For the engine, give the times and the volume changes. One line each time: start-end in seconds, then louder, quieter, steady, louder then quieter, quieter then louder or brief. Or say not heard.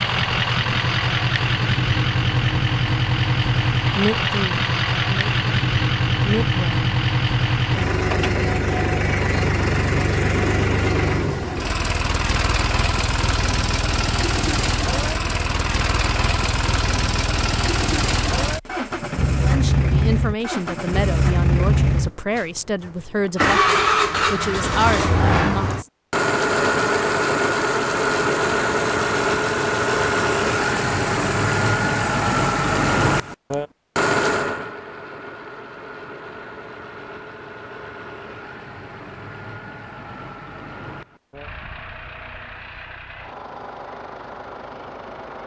0.0-45.4 quieter.